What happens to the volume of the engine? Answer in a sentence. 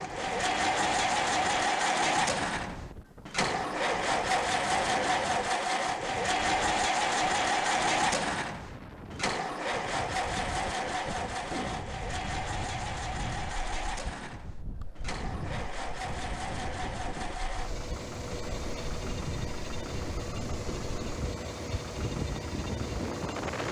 The loudness of the engine goes down.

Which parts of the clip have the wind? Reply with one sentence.
The wind can be heard from 0.0 to 23.6 s.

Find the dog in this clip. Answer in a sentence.
You can't hear the dog here.